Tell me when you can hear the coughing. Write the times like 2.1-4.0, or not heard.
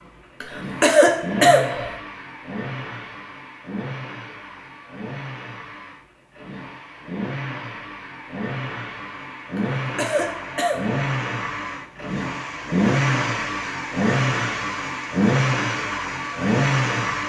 0.4-1.9, 9.6-11.0.